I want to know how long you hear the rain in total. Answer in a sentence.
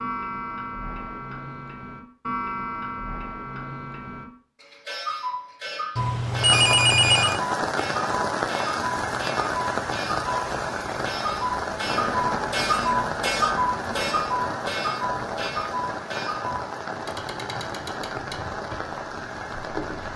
You can hear the rain for 14 seconds altogether.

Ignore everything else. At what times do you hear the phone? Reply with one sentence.
You can hear the phone from 6.0 to 7.4 s.